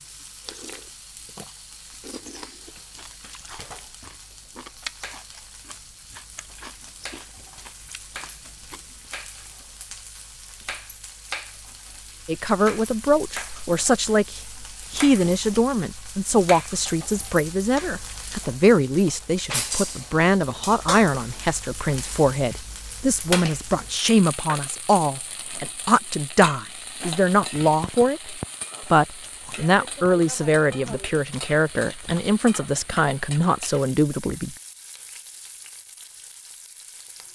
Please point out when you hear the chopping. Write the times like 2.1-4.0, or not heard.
not heard.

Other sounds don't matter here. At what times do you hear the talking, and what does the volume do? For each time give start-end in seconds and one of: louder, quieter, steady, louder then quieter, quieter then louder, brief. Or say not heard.
12.2-34.5 steady.